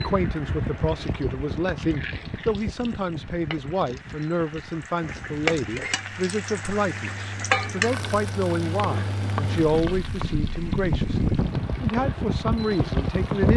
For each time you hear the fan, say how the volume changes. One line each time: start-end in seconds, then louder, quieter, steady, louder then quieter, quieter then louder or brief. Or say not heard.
0.0-13.5 quieter then louder.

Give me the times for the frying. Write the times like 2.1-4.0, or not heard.
0.0-13.5.